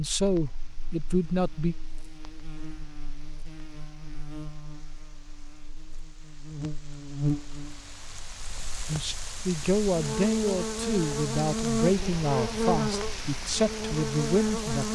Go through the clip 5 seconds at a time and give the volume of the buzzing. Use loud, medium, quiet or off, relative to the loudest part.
quiet, medium, loud.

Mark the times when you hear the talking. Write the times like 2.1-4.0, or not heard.
0.0-1.8, 8.8-14.8.